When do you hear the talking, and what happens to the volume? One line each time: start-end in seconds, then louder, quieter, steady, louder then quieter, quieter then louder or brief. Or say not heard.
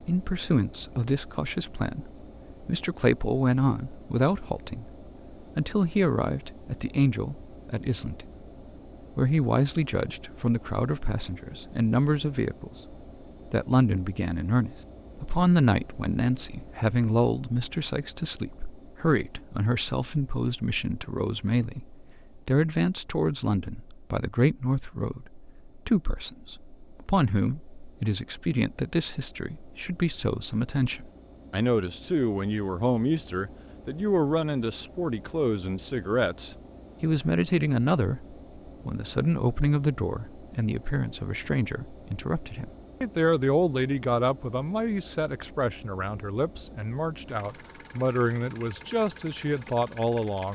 0.0-8.4 steady
9.2-50.5 steady.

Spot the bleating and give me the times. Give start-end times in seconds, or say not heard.
not heard.